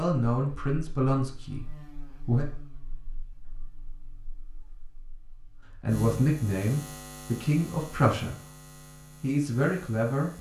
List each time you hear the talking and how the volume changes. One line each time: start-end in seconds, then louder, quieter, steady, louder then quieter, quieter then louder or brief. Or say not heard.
0.0-2.5 brief
5.8-10.3 quieter then louder.